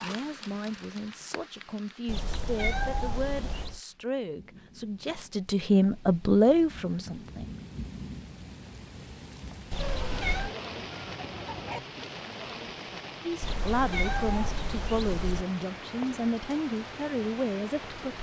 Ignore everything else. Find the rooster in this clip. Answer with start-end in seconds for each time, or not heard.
9.8-11.8.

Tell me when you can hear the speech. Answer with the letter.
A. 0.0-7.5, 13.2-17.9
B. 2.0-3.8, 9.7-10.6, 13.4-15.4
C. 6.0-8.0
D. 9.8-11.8
A.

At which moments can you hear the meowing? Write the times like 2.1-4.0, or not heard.
2.0-3.8, 9.7-10.6, 13.4-15.4.